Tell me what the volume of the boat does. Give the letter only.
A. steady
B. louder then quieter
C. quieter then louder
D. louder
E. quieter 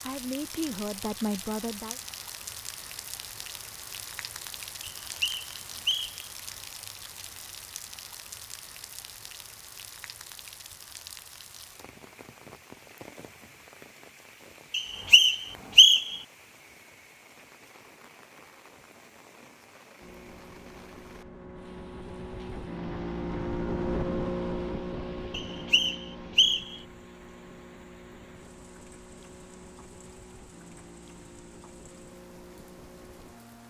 B.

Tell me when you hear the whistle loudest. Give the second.
16 s.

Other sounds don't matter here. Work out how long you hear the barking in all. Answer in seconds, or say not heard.
not heard.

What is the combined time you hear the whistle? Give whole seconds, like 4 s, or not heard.
4 s.